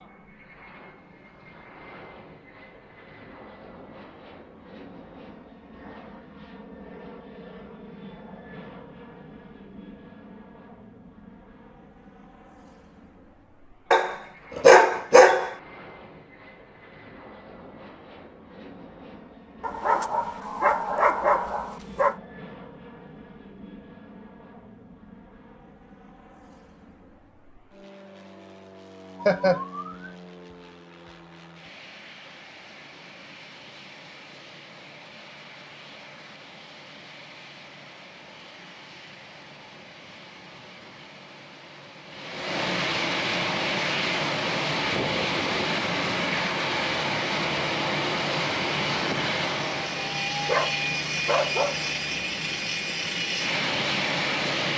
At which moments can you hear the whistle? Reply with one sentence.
You can't hear the whistle here.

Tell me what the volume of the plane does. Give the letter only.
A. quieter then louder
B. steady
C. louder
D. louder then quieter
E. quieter
C.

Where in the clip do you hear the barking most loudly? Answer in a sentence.
The volume of the barking peaks at 15 seconds.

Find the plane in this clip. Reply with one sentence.
You can hear the plane from 0.0 to 54.7 s.